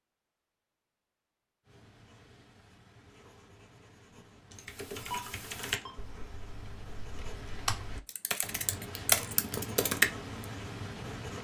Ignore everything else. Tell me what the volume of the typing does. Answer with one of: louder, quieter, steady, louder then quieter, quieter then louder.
quieter then louder.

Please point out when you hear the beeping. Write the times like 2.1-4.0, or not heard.
4.5-6.0.